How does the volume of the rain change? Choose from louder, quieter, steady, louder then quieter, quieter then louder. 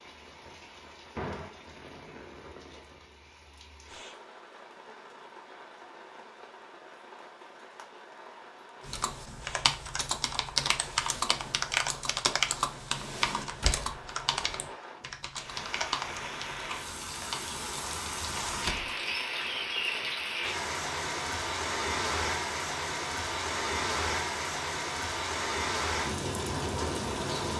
louder.